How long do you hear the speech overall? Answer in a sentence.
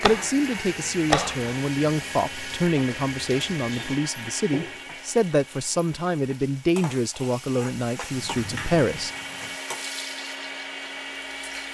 The speech can be heard for 9 seconds in total.